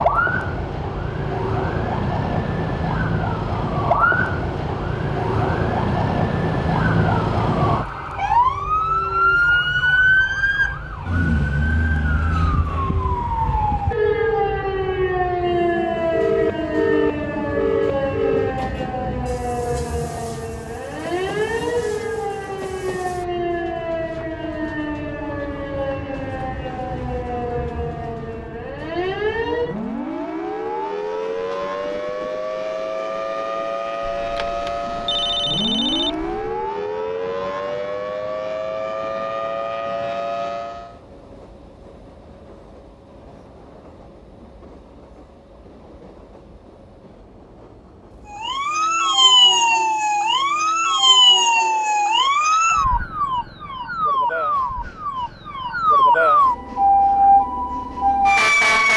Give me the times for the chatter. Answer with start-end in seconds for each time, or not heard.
not heard.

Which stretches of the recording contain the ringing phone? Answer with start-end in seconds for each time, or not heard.
16.1-18.6, 34.0-36.5.